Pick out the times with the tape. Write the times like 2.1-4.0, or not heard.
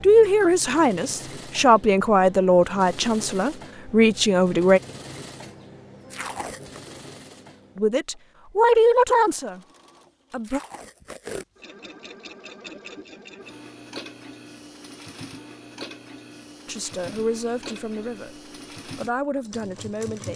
6.1-6.8, 10.4-11.4.